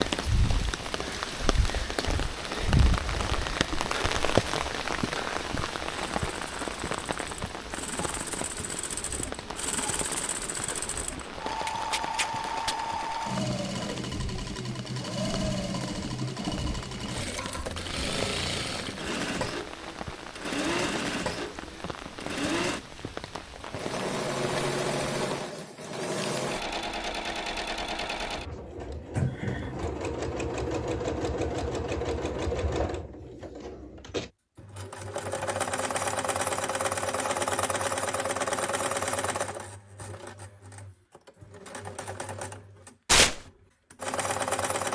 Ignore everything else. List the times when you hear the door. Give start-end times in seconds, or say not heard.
29.1-29.9.